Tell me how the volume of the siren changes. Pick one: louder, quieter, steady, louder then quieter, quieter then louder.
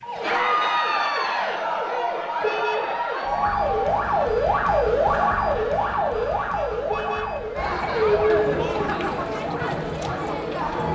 louder then quieter.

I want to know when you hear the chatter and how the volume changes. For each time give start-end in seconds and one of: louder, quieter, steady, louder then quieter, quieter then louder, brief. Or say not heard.
0.1-10.8 quieter then louder.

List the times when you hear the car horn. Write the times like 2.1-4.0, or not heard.
2.4-3.0, 6.8-7.5.